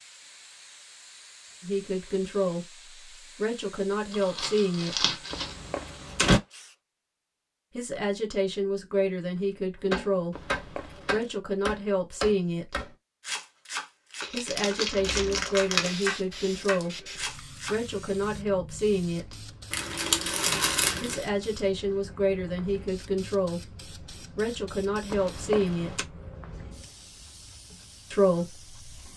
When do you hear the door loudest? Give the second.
6 s.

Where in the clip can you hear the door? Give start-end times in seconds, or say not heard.
5.3-6.4, 10.3-11.2, 25.1-26.1.